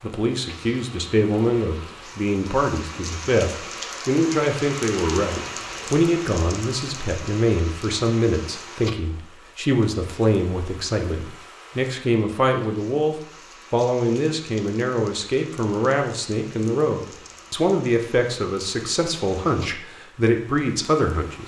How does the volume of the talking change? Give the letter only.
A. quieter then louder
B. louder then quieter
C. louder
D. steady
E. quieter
D.